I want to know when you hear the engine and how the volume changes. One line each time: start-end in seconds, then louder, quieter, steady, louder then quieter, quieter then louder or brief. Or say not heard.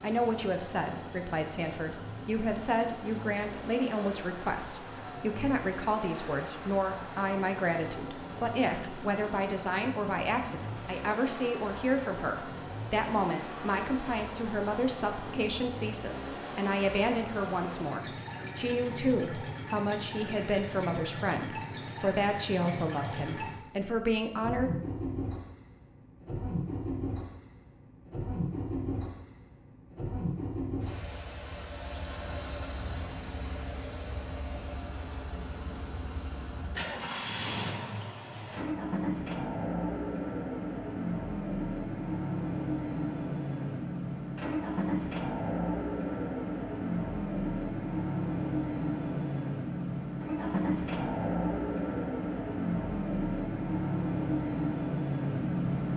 0.0-55.9 louder.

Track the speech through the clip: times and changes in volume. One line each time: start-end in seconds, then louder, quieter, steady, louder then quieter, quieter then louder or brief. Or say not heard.
0.0-24.7 steady.